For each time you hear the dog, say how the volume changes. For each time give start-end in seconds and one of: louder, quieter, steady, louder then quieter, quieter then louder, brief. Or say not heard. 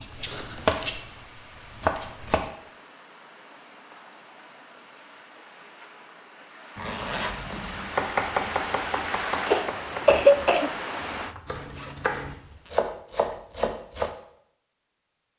not heard.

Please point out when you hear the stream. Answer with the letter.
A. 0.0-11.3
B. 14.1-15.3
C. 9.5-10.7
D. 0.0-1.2
A.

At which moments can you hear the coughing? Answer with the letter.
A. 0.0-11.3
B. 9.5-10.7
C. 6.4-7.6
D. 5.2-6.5
B.